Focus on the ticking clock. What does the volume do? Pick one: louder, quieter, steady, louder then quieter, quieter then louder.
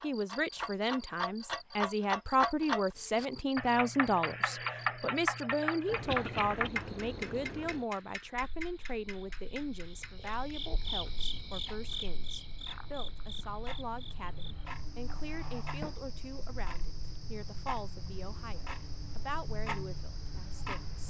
quieter then louder.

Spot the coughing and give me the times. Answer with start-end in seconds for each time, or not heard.
6.0-6.7.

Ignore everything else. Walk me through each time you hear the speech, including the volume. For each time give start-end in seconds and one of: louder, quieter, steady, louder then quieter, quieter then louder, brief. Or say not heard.
0.0-21.0 quieter.